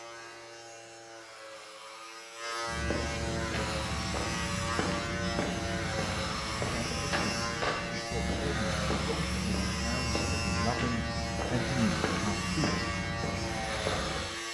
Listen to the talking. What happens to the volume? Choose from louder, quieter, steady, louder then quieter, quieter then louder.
louder.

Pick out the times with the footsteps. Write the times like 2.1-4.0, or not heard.
2.6-14.2.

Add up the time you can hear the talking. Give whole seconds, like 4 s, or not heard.
6 s.